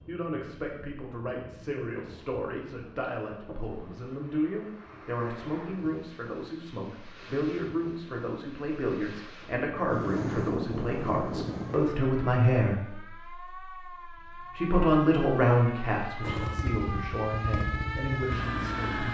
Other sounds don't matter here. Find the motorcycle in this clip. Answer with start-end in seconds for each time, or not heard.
16.2-19.0.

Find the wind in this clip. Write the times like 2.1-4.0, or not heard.
0.0-11.9.